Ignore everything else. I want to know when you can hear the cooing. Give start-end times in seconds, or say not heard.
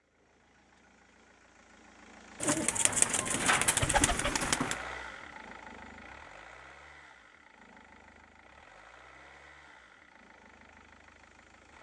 2.4-4.8.